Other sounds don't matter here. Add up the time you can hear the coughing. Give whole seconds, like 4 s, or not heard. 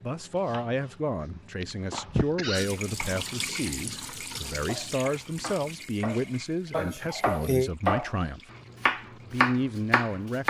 2 s.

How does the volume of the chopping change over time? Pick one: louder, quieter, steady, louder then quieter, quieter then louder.
louder.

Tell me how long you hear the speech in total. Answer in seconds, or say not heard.
10 s.